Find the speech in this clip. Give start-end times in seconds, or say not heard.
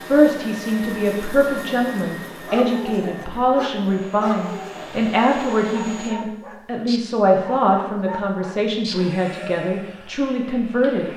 0.1-11.1.